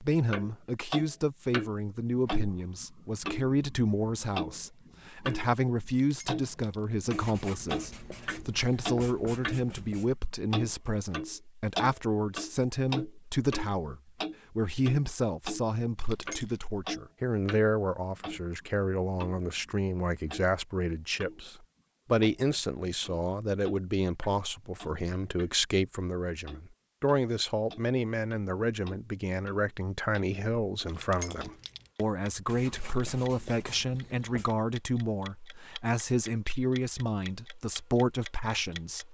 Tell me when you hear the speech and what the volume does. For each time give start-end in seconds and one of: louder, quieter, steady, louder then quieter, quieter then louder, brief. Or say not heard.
0.0-39.0 steady.